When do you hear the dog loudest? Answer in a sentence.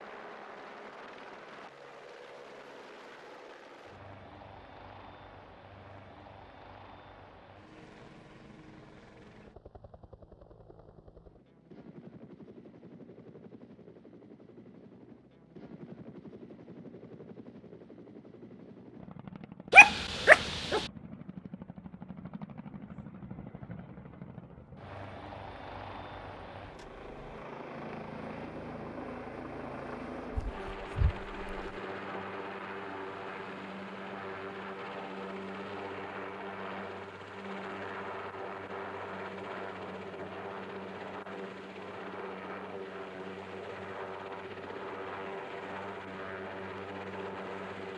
The volume of the dog peaks at 20 seconds.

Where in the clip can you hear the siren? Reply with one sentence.
You can't hear the siren here.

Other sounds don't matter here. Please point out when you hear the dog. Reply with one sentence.
You can hear the dog from 19.7 to 20.8 s and from 30.3 to 31.8 s.